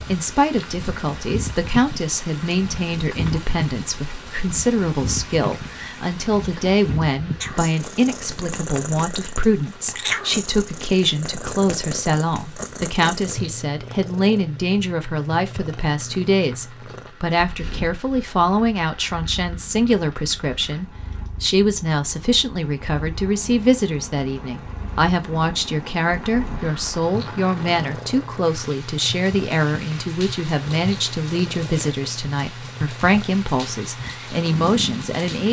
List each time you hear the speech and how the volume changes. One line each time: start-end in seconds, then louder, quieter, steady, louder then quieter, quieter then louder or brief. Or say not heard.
0.0-35.4 steady.